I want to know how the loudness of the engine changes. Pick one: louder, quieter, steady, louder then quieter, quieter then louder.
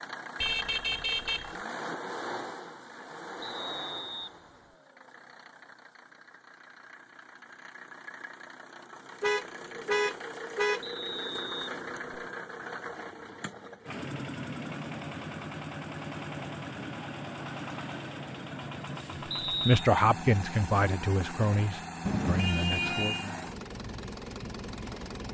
quieter then louder.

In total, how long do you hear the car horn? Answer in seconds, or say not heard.
4 s.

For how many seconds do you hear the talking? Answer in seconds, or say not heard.
4 s.